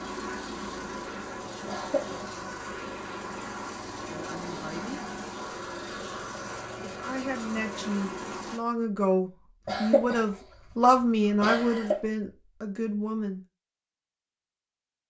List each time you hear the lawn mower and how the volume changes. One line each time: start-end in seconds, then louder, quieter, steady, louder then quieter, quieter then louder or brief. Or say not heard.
0.0-8.6 steady.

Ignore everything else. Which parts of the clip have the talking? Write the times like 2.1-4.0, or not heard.
4.0-5.0, 6.8-13.4.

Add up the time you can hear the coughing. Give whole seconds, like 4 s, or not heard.
2 s.